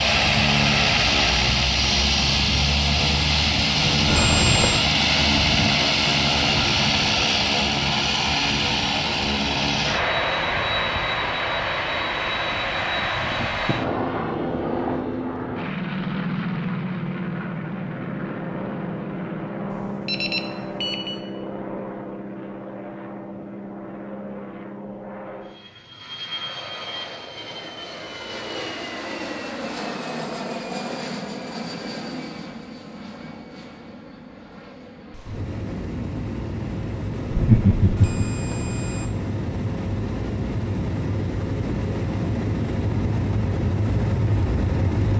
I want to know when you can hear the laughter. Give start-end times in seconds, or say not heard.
37.3-38.2.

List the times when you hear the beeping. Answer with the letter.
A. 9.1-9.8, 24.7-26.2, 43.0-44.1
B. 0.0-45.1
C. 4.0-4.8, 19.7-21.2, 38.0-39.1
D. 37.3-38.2
C.